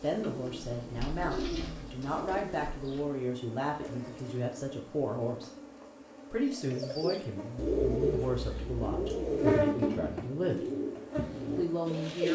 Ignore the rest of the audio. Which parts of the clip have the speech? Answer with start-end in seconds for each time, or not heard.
0.0-5.5, 6.3-10.7, 11.6-12.3.